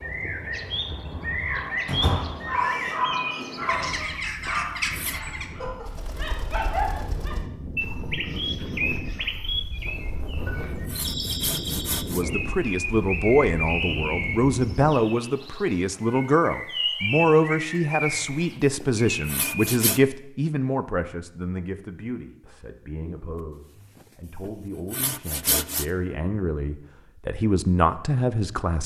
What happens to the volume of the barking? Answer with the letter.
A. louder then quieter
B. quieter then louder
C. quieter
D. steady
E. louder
B.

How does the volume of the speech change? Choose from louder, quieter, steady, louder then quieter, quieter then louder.
quieter then louder.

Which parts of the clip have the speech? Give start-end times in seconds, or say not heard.
12.1-28.8.